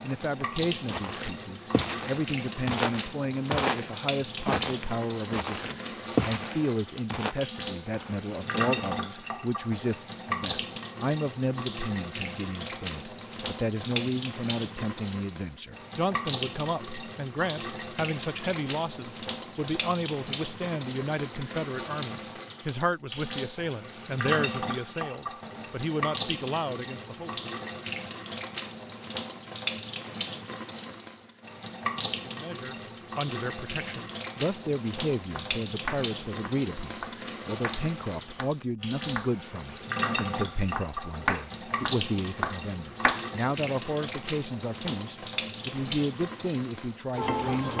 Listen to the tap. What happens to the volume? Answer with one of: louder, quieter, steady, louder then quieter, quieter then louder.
steady.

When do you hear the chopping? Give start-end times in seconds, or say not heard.
35.3-39.3, 40.1-43.2.